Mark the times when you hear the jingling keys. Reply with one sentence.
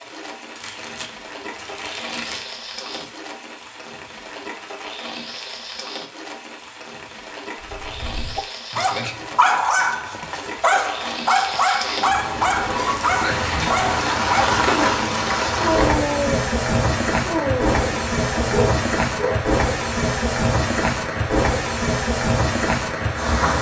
The jingling keys can't be heard in this clip.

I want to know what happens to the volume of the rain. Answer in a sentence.
The volume of the rain goes up.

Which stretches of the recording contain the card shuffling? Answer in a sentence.
You can hear the card shuffling from 0.6 to 3.2 s.